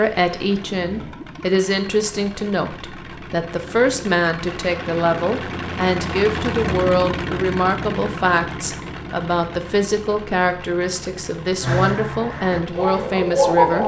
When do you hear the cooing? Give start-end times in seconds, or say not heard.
11.6-13.8.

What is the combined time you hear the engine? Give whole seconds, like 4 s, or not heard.
14 s.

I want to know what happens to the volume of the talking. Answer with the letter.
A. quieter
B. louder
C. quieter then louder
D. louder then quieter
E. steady
E.